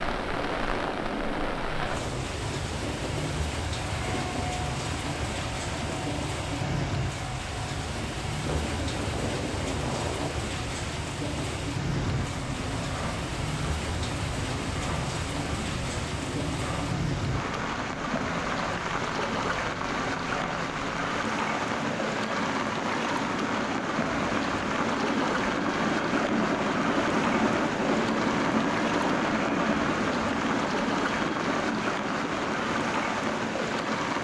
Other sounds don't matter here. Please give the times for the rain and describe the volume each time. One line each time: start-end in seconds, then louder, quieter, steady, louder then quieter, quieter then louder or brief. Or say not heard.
0.0-34.2 steady.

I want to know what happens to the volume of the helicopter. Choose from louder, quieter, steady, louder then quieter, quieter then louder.
louder.